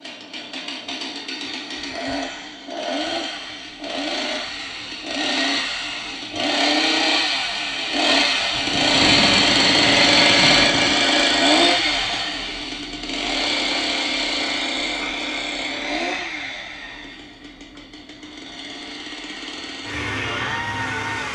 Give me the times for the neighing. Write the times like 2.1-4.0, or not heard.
not heard.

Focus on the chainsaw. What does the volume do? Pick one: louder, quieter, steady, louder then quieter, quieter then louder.
louder then quieter.